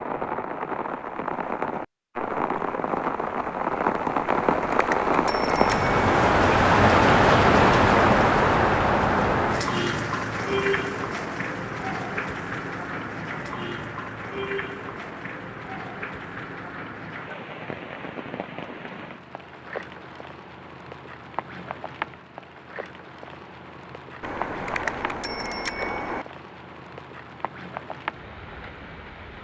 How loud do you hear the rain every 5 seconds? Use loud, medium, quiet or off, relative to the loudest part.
medium, loud, medium, quiet, quiet, quiet.